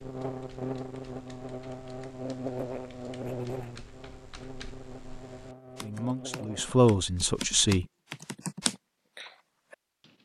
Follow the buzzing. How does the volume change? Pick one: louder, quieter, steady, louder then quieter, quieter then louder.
quieter.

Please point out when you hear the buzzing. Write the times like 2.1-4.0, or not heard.
0.0-6.8.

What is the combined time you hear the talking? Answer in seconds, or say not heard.
2 s.